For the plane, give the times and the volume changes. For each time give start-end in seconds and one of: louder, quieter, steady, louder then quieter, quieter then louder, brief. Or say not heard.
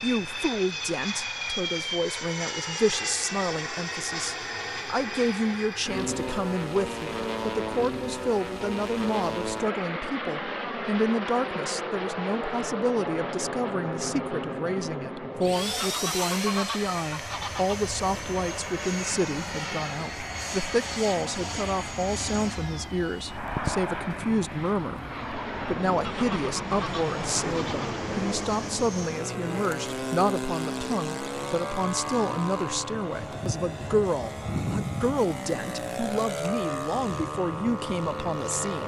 0.0-38.8 steady.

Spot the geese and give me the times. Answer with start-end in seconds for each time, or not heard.
15.8-17.8, 26.0-28.0.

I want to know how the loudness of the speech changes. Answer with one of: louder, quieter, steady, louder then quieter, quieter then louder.
steady.